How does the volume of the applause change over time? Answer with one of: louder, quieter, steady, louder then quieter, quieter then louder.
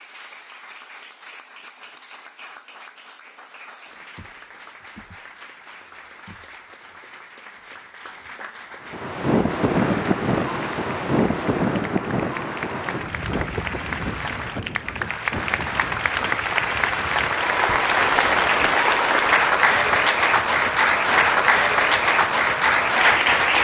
louder.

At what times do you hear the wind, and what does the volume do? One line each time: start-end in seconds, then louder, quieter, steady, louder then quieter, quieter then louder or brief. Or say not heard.
8.8-23.5 quieter.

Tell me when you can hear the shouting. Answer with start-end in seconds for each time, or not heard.
not heard.